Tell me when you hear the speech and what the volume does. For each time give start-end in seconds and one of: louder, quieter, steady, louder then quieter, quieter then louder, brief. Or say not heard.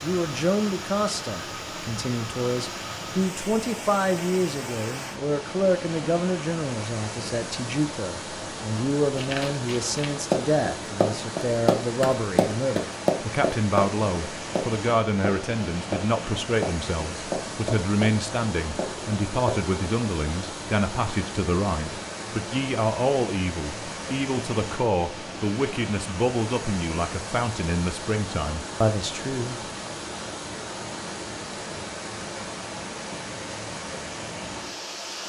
0.0-29.6 steady.